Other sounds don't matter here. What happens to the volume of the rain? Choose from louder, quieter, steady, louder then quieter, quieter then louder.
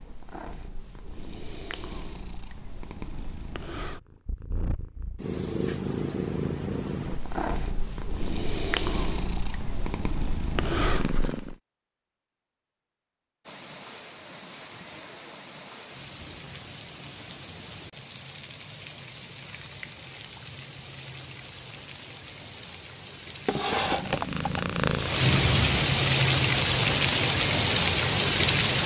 louder.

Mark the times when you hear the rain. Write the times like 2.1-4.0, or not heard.
13.4-28.8.